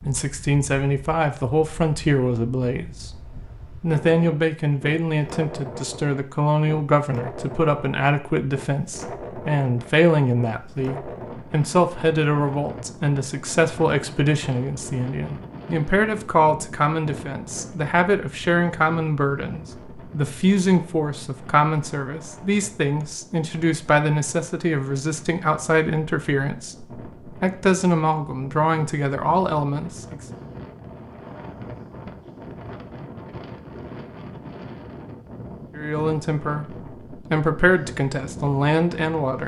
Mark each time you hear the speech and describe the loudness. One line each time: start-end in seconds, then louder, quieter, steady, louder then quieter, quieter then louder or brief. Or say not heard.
0.0-30.1 steady
35.8-36.6 brief
37.3-39.4 brief.